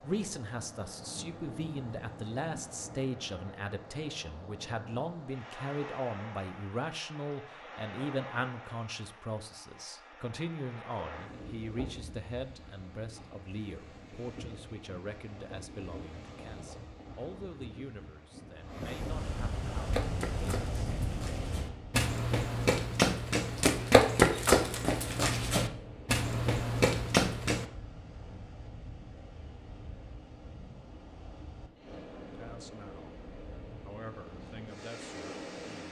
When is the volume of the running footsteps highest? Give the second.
24 s.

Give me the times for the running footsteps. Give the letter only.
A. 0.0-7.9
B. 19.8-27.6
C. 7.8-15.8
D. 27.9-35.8
B.